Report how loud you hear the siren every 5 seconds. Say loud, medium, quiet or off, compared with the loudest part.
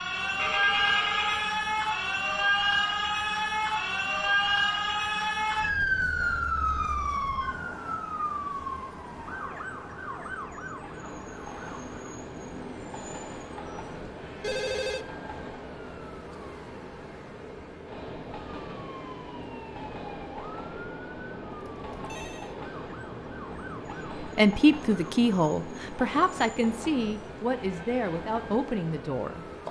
loud, loud, quiet, quiet, quiet, quiet.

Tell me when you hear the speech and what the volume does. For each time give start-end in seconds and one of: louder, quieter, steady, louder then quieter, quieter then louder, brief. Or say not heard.
24.2-29.6 quieter.